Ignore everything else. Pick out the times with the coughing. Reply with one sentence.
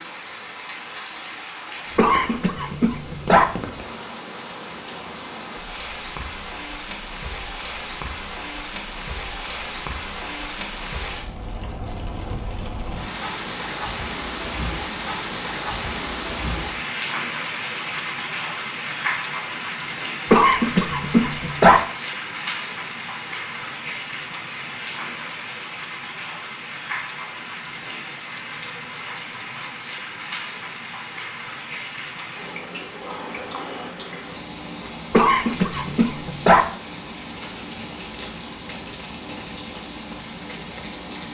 You can hear the coughing from 1.9 to 3.5 s, from 20.3 to 21.8 s and from 35.1 to 36.6 s.